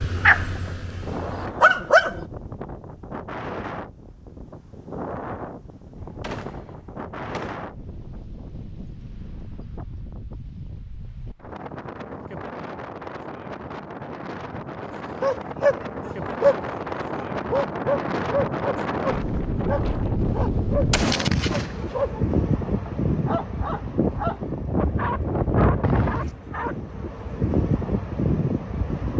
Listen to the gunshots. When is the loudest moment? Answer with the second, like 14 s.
21 s.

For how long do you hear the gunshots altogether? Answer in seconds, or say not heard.
3 s.